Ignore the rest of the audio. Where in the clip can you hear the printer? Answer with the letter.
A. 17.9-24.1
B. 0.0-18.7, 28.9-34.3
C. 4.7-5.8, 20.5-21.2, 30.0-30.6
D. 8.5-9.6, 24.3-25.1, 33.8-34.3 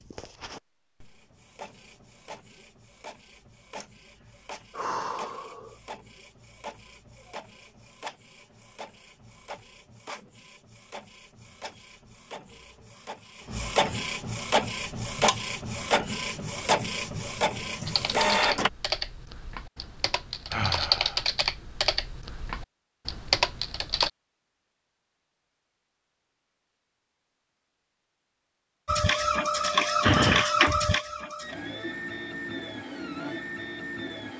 B.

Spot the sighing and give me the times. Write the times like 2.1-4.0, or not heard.
4.7-5.8, 20.5-21.2, 30.0-30.6.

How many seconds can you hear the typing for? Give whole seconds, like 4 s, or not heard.
6 s.